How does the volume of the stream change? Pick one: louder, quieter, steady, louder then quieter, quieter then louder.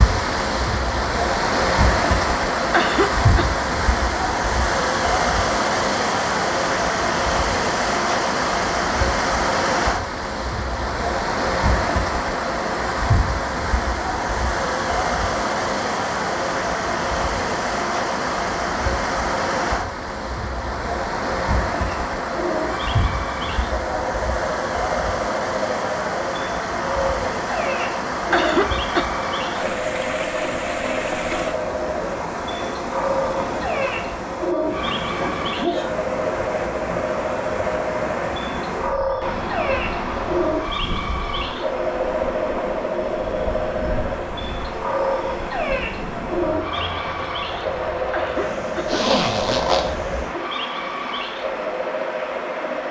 quieter.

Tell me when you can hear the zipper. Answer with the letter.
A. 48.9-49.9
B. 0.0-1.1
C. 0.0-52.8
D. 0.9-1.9
A.